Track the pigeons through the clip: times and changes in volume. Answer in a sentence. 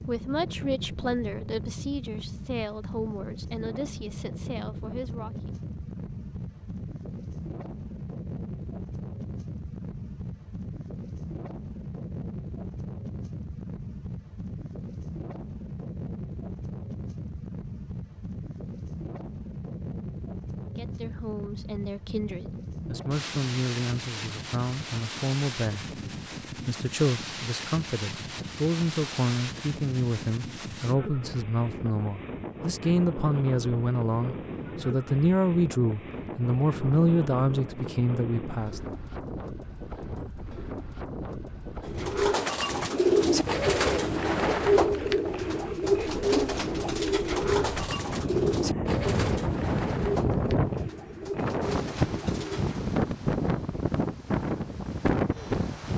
The pigeons can be heard from 41.9 to 52.8 s, getting quieter.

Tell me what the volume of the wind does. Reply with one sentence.
The loudness of the wind goes up.